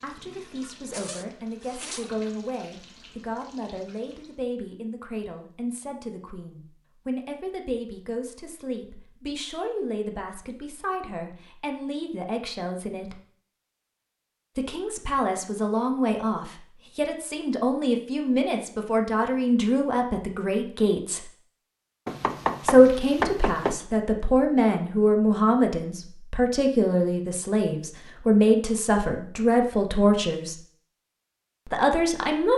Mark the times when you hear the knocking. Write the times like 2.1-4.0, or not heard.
22.1-23.8.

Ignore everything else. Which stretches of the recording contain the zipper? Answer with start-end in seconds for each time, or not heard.
0.9-2.1.